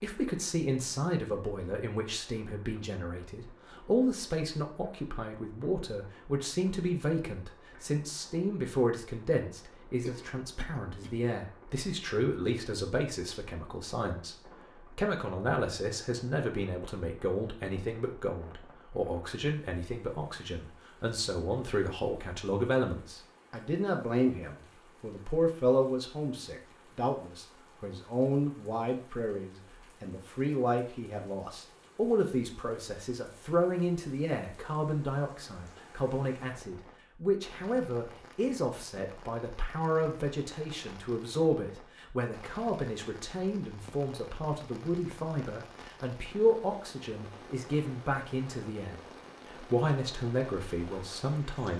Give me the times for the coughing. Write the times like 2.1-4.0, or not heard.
10.0-11.3.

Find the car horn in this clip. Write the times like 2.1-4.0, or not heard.
not heard.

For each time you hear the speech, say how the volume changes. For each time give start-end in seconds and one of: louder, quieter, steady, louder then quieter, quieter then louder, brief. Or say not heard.
0.0-51.7 steady.